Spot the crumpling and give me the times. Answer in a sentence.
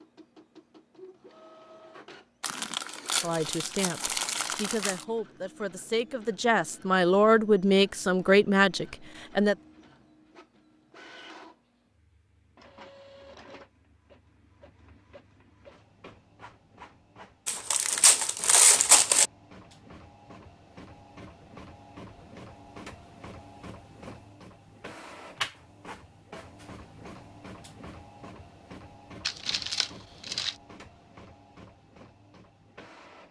The crumpling can be heard from 2.4 to 5.0 s, from 17.4 to 19.3 s and from 29.2 to 30.6 s.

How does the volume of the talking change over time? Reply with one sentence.
The loudness of the talking goes up.